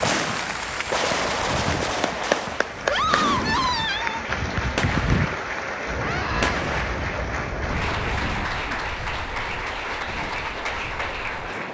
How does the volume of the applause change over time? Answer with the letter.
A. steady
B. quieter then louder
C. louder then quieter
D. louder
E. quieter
A.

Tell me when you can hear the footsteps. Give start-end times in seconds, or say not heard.
not heard.